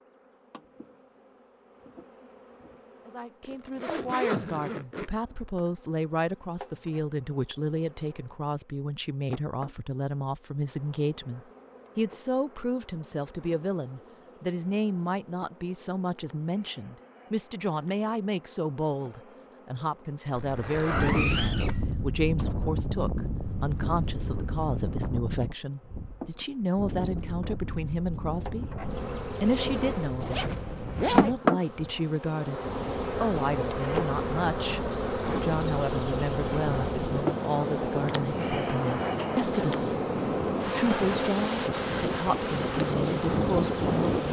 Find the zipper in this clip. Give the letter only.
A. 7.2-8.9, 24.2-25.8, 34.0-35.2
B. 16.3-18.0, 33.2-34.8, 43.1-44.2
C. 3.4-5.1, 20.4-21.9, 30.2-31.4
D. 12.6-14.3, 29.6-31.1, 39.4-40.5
C.